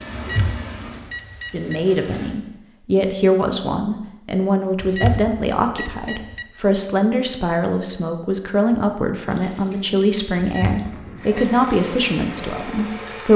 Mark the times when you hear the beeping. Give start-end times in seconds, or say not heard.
0.1-1.8, 4.8-6.5, 10.4-11.5.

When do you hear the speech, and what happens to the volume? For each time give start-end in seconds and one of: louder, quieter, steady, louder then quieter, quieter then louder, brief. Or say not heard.
1.5-13.3 steady.